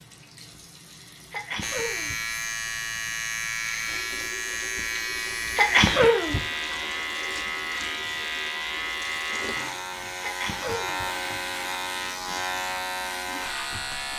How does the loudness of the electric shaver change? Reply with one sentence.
The volume of the electric shaver stays about the same.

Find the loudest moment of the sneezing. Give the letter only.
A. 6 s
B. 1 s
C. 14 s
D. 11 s
A.